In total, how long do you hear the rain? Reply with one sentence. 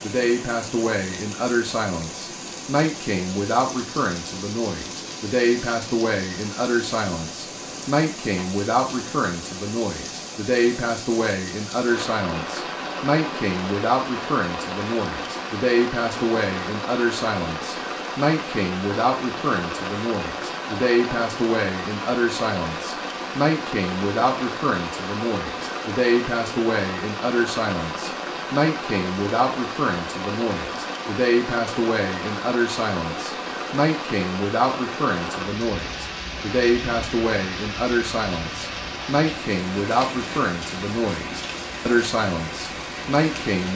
The rain can be heard for 44 seconds in total.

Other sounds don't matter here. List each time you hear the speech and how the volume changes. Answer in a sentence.
You can hear the speech from 0.0 to 43.7 s, at a steady volume.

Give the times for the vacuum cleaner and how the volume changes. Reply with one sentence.
You can't hear the vacuum cleaner here.